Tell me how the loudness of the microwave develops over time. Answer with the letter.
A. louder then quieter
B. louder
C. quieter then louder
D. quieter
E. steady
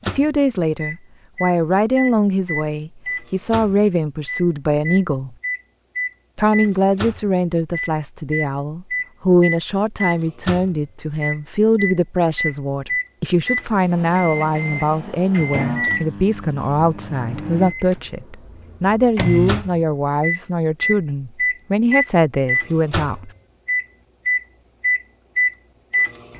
B.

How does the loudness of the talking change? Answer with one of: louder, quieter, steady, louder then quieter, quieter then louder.
steady.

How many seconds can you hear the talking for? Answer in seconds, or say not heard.
22 s.